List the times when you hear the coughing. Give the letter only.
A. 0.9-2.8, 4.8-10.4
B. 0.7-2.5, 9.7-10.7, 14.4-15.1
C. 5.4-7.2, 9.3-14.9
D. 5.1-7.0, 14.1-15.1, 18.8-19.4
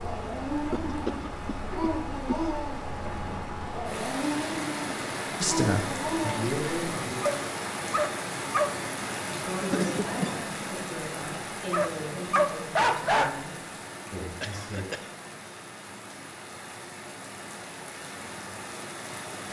B.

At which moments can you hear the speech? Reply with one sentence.
You can hear the speech from 5.4 to 7.2 s and from 9.3 to 14.9 s.